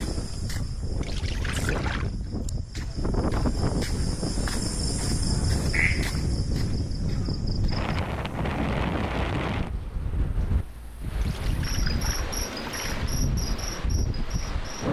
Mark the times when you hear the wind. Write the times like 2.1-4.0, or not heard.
0.0-14.8.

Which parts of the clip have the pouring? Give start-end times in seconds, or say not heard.
1.0-2.1, 11.2-13.2.